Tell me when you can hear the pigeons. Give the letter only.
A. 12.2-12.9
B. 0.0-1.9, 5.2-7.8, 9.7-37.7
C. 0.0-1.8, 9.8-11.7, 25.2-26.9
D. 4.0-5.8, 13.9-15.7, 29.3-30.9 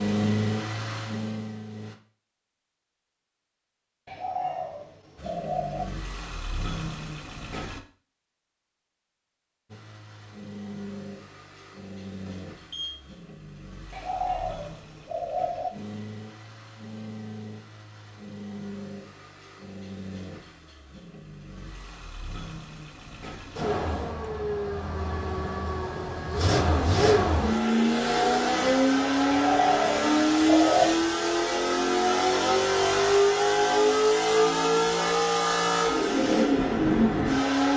D.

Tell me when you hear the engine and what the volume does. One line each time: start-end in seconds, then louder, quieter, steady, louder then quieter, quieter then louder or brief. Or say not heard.
0.0-1.9 brief
5.2-7.8 brief
9.7-37.7 louder.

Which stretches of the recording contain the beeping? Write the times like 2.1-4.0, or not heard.
12.2-12.9.